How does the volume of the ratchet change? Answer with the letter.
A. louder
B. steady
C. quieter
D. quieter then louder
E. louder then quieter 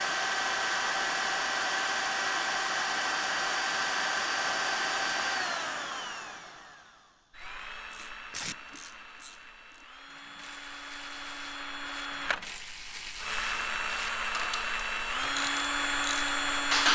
A.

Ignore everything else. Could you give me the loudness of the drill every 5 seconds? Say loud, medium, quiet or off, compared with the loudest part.
loud, medium, medium, loud.